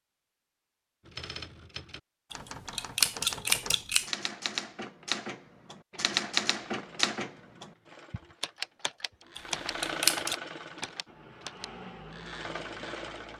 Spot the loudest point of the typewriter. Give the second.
6 s.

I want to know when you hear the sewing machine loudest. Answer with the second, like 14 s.
10 s.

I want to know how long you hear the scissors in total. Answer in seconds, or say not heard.
3 s.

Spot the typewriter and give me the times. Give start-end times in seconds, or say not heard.
1.1-11.7.